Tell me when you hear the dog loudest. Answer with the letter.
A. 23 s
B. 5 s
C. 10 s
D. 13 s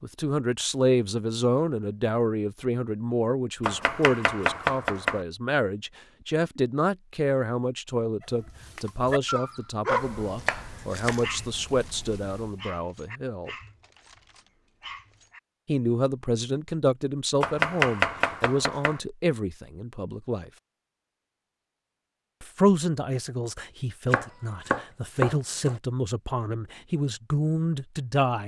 C.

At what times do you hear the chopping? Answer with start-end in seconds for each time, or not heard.
3.6-5.2, 9.9-12.5, 17.4-19.0, 24.1-25.8.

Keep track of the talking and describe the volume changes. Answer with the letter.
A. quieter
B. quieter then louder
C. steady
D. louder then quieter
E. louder
C.